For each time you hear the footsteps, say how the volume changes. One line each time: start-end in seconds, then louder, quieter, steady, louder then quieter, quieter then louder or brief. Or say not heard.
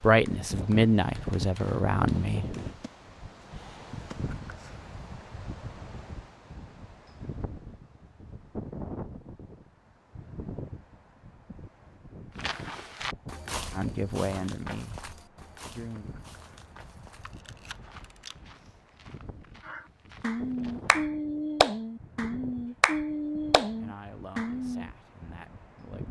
12.3-21.0 quieter.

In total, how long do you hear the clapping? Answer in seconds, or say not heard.
8 s.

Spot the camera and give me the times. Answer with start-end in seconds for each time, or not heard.
17.2-18.6.